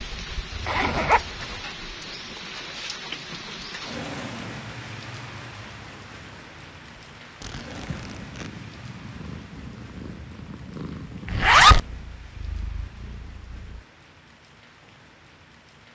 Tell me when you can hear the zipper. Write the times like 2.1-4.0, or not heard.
0.5-1.6, 7.4-8.5, 11.2-11.8.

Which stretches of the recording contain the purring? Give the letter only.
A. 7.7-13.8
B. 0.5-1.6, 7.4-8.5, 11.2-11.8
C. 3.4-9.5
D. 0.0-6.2
A.